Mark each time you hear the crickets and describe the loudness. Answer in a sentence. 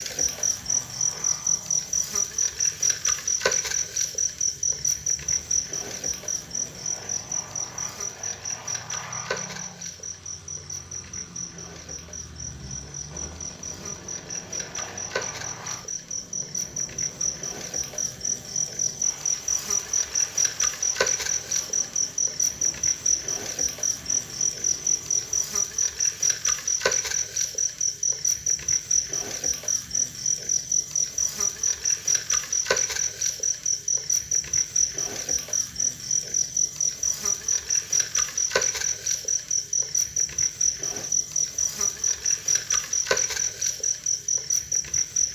You can hear the crickets from 0.0 to 45.2 s, getting quieter then louder.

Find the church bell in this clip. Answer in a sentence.
You can't hear the church bell here.